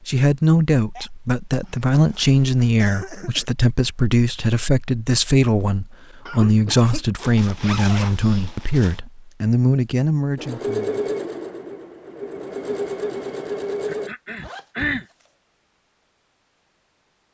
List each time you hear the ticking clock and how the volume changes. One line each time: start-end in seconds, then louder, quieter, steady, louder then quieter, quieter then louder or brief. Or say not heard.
not heard.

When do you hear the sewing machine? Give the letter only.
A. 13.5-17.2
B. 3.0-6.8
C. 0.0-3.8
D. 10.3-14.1
D.